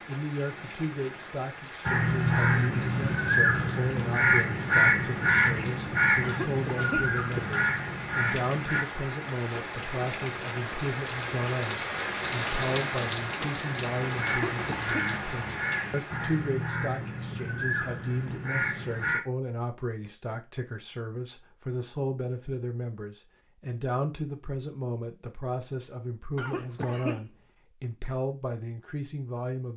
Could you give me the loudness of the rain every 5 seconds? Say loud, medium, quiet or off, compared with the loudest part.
medium, medium, loud, medium, off, off.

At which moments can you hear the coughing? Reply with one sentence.
The coughing can be heard from 6.2 to 7.7 s, from 14.2 to 15.1 s and from 26.4 to 27.2 s.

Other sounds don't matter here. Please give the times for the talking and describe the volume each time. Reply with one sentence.
The talking can be heard from 0.1 to 29.7 s, at a steady volume.